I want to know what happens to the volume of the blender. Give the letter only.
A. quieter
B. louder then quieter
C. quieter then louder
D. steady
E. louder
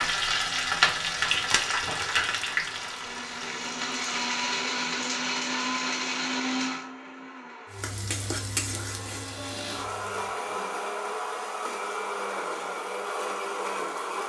C.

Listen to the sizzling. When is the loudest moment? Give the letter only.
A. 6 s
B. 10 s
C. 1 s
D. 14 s
C.